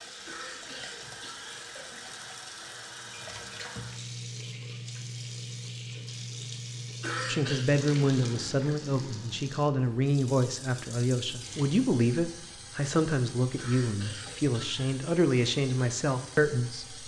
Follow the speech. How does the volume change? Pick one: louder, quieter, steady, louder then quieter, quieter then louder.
steady.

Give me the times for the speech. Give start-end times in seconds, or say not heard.
7.2-17.0.